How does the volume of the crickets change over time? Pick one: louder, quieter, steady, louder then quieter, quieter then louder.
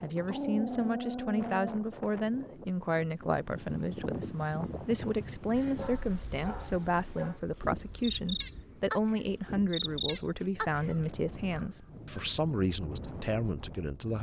louder then quieter.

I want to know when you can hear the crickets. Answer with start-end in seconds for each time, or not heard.
4.5-14.1.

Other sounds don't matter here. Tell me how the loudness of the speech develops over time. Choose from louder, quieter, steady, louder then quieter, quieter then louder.
steady.